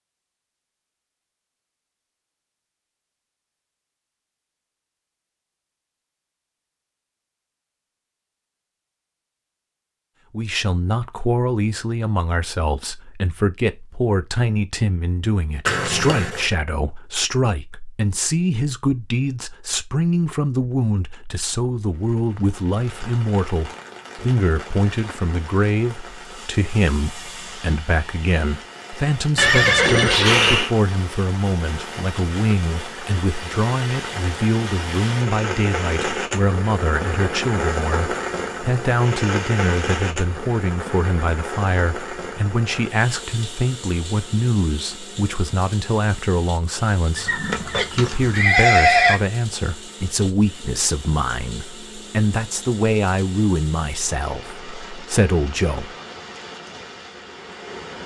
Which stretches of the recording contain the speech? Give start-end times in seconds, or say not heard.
10.3-55.9.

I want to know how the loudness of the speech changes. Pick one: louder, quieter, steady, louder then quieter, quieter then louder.
steady.